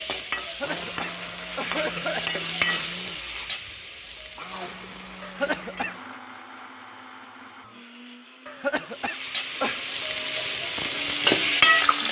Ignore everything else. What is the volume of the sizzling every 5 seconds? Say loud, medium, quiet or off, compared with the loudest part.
medium, quiet, loud.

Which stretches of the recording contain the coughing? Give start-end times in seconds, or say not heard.
0.4-2.4, 5.2-6.0, 8.4-9.8.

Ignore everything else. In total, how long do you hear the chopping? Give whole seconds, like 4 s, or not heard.
not heard.